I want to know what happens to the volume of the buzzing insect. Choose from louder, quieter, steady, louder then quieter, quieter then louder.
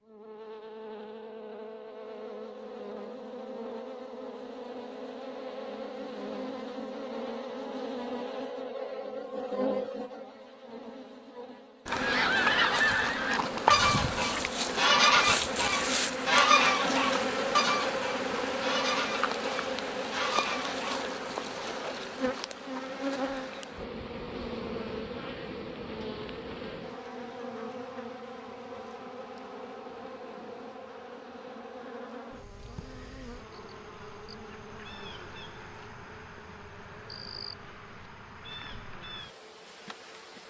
louder then quieter.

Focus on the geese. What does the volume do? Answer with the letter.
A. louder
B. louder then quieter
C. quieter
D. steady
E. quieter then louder
C.